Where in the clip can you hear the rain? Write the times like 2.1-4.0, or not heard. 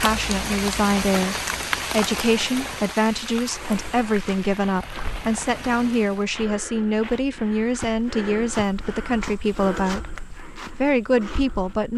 0.0-6.3.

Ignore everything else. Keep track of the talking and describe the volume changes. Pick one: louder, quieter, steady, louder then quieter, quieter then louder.
steady.